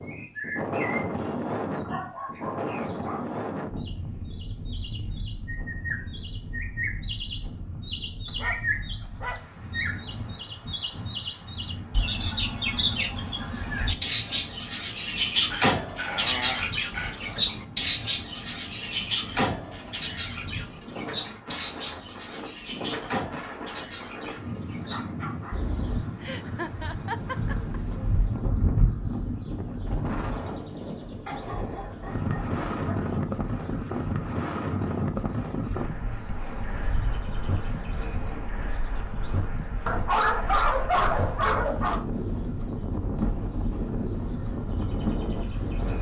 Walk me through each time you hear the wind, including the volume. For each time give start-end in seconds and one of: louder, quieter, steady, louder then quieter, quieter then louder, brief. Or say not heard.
0.0-45.9 quieter then louder.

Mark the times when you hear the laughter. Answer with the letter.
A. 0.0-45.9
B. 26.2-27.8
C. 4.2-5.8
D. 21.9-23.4
B.